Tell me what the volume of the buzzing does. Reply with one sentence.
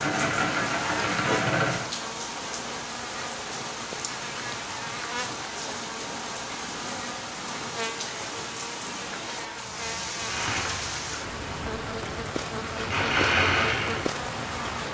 The volume of the buzzing stays about the same.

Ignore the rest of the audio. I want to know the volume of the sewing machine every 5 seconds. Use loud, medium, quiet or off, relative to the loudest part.
loud, off, loud.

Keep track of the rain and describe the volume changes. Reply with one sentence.
The loudness of the rain stays about the same.